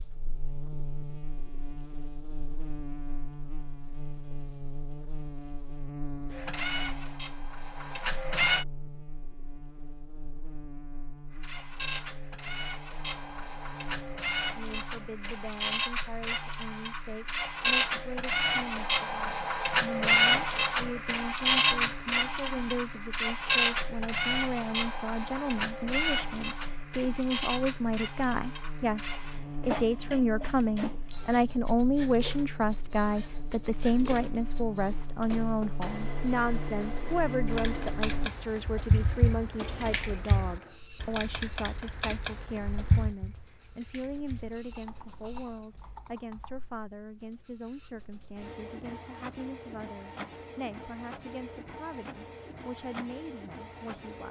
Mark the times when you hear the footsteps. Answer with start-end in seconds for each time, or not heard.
not heard.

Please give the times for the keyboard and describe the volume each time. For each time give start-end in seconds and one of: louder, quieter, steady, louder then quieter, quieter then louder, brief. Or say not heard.
37.5-46.9 quieter.